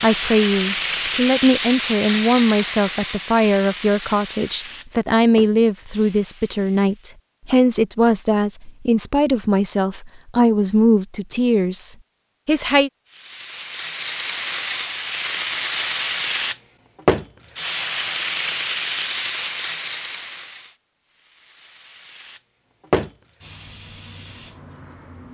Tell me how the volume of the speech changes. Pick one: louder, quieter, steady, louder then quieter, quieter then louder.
steady.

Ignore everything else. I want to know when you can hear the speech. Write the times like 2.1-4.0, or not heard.
0.0-12.9.